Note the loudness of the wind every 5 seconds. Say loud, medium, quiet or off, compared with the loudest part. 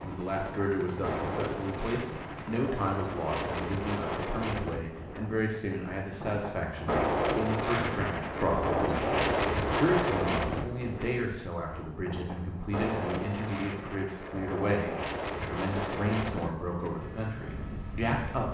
medium, loud, medium, medium.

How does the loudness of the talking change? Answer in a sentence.
The loudness of the talking stays about the same.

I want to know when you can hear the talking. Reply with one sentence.
The talking can be heard from 0.0 to 18.4 s.